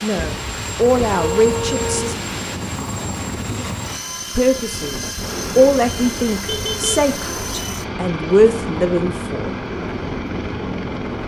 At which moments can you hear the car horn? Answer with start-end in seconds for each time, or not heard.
0.1-2.1, 6.5-7.0.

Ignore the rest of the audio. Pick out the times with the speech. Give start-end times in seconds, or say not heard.
0.0-2.1, 4.3-9.5.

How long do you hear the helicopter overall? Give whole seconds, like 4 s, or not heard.
11 s.